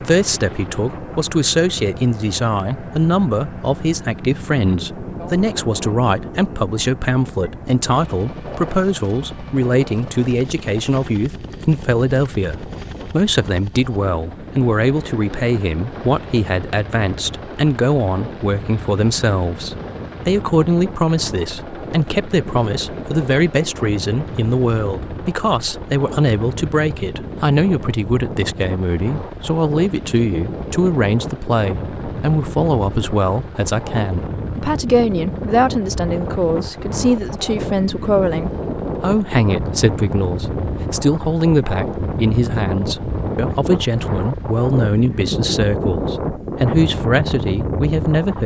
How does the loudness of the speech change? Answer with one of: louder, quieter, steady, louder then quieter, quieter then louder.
steady.